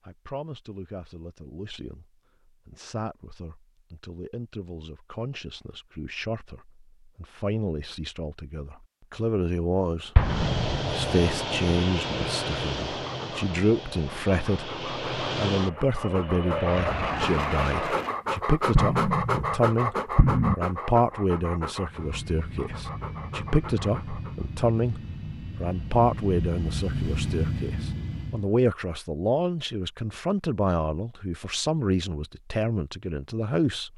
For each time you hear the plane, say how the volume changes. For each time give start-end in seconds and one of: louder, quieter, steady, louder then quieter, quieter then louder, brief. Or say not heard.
10.2-18.2 quieter then louder
21.9-28.5 louder.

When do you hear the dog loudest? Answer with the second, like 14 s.
19 s.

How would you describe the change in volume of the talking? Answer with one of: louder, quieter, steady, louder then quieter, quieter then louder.
louder.